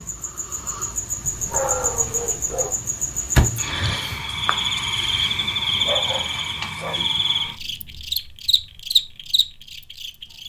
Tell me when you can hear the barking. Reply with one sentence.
The barking can be heard from 1.2 to 2.8 s and from 5.3 to 7.0 s.